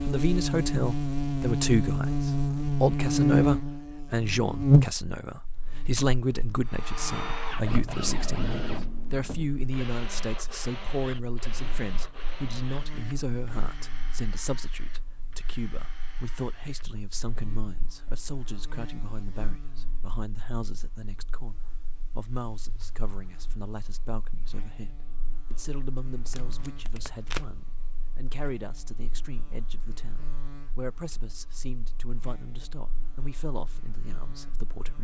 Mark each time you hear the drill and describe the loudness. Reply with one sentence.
The drill can be heard from 6.7 to 17.5 s, getting quieter.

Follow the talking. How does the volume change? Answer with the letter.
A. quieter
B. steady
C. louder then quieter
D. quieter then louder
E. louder
A.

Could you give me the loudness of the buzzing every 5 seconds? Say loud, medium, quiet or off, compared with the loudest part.
loud, quiet, quiet, quiet, quiet, quiet, quiet.